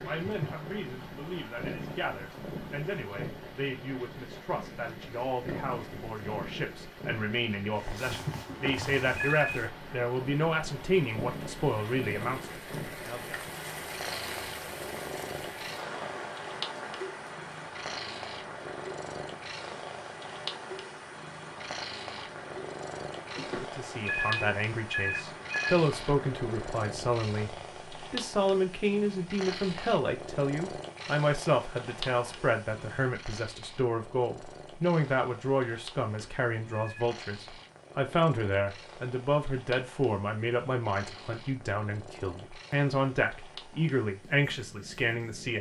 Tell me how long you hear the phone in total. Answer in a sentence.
The phone can be heard for 5 seconds in total.